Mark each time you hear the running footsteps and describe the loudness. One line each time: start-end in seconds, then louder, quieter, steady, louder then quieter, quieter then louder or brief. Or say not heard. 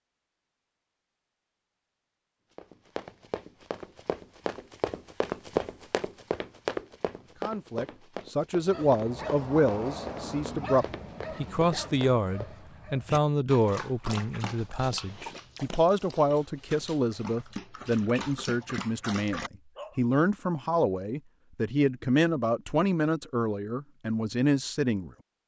2.5-12.6 louder then quieter.